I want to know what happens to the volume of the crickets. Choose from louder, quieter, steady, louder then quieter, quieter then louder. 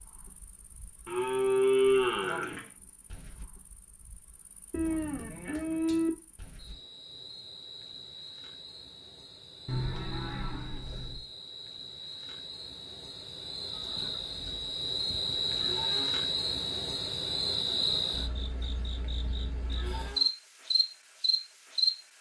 louder.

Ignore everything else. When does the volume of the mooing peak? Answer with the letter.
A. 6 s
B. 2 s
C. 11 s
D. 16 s
B.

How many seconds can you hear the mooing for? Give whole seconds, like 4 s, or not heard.
9 s.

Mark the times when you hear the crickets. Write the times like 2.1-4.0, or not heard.
0.0-21.9.